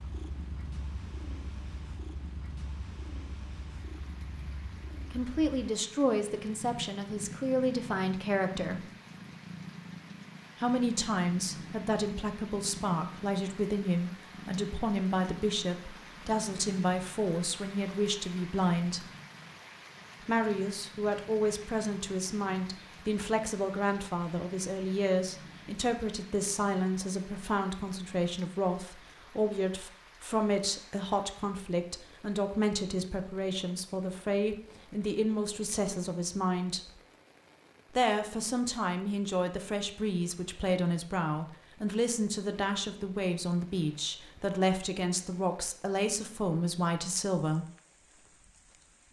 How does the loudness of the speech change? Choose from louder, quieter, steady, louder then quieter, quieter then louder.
steady.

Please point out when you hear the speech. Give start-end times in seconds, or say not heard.
5.1-8.8, 10.6-19.1, 20.2-37.0, 38.0-47.6.